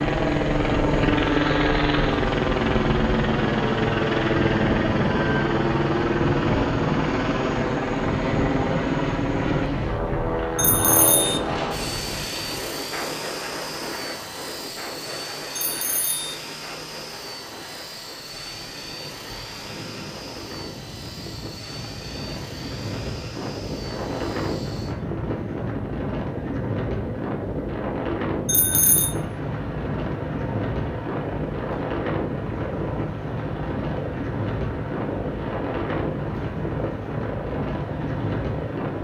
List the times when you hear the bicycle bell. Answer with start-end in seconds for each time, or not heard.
10.6-11.4, 15.6-16.4, 28.4-29.1.